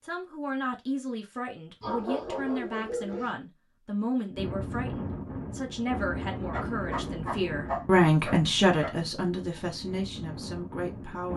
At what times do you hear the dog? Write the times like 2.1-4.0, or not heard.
1.8-3.4, 6.5-8.9.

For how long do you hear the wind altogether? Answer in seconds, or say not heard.
7 s.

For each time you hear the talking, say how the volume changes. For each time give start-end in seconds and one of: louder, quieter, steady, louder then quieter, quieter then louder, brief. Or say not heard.
0.0-11.3 louder then quieter.